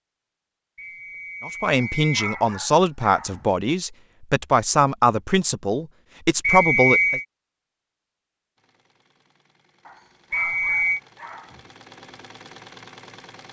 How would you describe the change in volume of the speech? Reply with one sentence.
The loudness of the speech stays about the same.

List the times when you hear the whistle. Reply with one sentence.
The whistle can be heard from 0.8 to 2.5 s, from 6.4 to 7.2 s and from 10.3 to 11.0 s.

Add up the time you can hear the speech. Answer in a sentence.
The speech can be heard for 6 seconds in total.